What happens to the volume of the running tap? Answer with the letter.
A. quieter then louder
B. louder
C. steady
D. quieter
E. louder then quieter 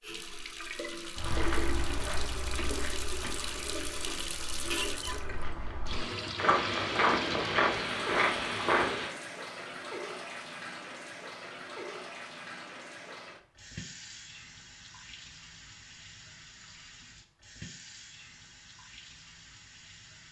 D.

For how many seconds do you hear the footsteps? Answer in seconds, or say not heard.
8 s.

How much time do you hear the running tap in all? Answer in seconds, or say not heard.
20 s.